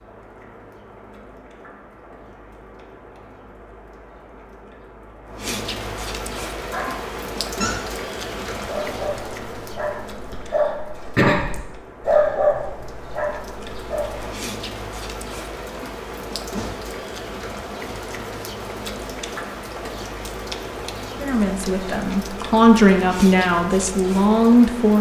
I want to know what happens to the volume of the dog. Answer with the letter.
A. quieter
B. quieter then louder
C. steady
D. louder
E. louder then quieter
E.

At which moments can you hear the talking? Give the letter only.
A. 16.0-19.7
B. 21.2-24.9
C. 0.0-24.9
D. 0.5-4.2
B.